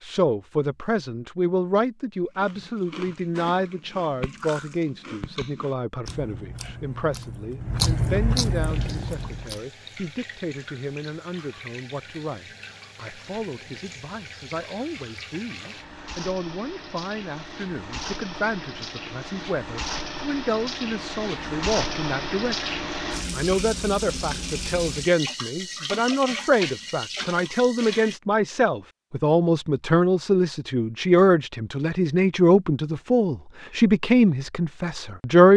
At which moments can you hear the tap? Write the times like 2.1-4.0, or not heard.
8.7-28.2.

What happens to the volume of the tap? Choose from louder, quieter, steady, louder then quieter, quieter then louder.
louder.